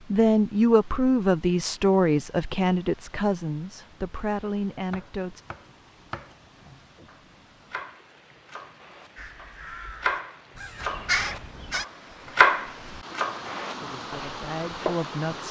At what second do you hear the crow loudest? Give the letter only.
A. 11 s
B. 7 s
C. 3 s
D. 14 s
A.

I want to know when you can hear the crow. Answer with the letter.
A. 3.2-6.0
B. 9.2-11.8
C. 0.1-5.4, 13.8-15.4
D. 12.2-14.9
B.